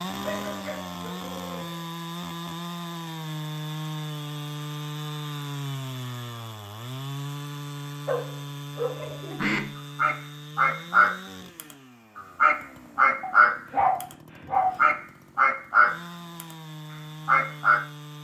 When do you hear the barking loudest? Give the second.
14 s.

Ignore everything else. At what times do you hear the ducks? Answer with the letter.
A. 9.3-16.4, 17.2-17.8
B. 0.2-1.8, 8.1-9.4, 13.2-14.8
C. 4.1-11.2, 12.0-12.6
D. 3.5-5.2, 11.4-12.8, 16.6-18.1
A.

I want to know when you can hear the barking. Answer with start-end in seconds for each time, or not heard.
0.2-1.8, 8.1-9.4, 13.2-14.8.